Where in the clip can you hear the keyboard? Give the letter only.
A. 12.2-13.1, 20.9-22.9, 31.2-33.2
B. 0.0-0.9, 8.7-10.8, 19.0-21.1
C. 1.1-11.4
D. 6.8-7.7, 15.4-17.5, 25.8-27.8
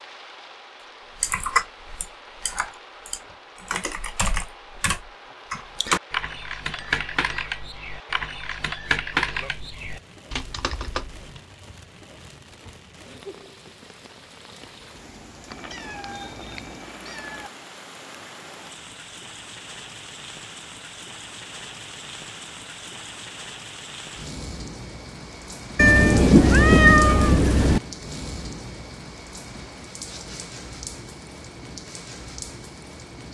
C.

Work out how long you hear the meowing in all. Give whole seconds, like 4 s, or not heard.
5 s.